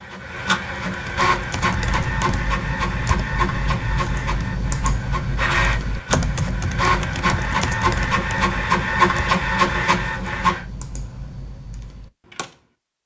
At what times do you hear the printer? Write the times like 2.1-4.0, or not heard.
0.0-10.6.